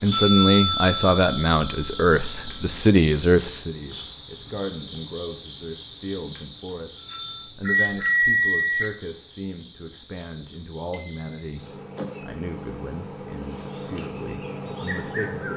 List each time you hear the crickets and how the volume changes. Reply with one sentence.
The crickets can be heard from 0.0 to 15.5 s, getting quieter.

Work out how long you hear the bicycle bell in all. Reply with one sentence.
The bicycle bell can be heard for 5 seconds in total.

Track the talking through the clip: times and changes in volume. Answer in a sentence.
You can hear the talking from 0.0 to 15.4 s, getting quieter.